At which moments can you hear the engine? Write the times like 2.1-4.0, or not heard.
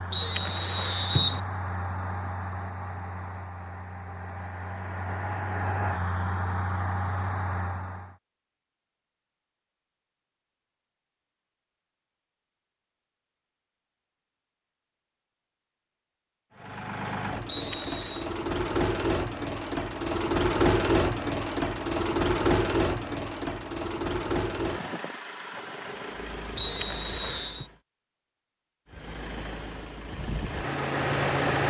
0.0-8.2, 16.6-27.8, 28.9-31.6.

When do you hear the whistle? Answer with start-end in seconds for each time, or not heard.
0.1-1.4, 17.4-18.3, 26.6-27.6.